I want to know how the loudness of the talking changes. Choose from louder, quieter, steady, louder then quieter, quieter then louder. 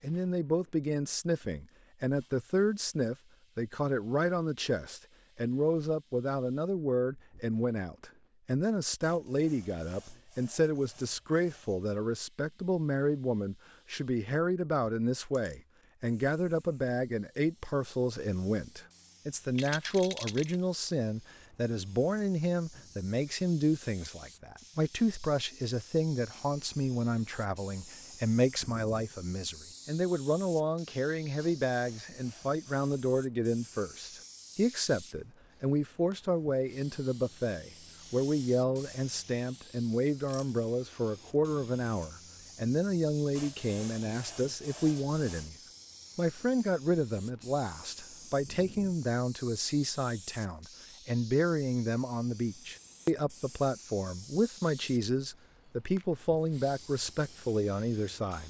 steady.